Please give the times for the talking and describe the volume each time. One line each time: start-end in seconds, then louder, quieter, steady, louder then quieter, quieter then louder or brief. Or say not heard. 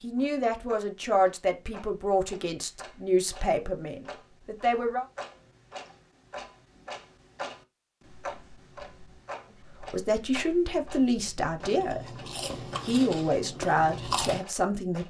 0.0-5.0 quieter
9.8-15.0 quieter then louder.